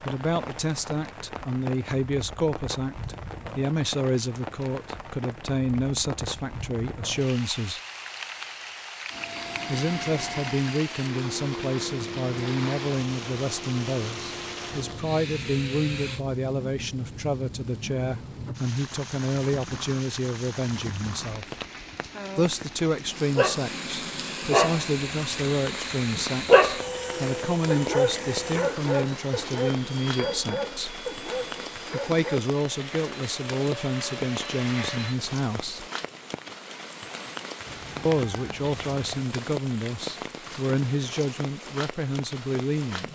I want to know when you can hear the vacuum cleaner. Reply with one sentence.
You can hear the vacuum cleaner from 9.1 to 16.2 s and from 23.6 to 35.2 s.